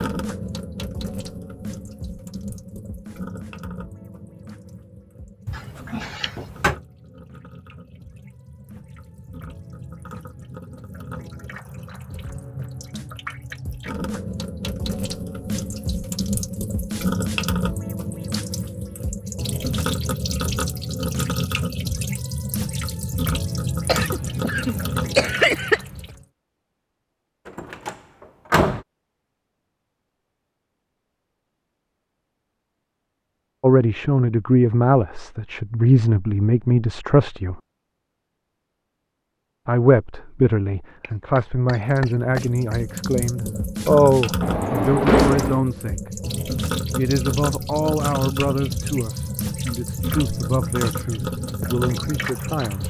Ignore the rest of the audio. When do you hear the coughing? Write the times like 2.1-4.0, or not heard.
5.5-6.3, 23.9-26.0, 41.0-42.8.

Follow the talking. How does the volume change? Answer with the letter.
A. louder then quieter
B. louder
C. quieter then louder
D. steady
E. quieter
E.